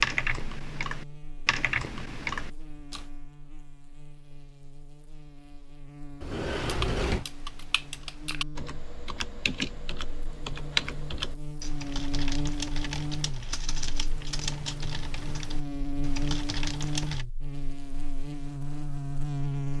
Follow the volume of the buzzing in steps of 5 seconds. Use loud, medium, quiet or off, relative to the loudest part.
quiet, quiet, loud, loud.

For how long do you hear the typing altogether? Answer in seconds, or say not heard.
14 s.